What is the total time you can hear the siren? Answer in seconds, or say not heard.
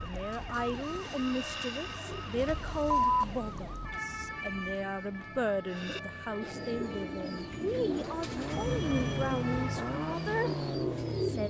11 s.